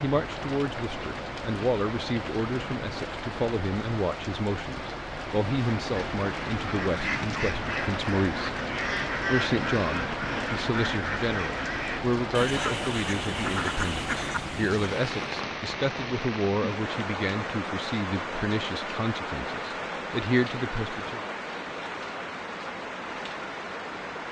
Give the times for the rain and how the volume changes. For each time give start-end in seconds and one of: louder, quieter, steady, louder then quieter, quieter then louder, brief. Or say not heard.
0.0-24.2 steady.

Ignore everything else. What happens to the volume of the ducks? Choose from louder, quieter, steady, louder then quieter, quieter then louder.
steady.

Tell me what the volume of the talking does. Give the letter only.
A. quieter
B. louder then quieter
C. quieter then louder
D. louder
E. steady
E.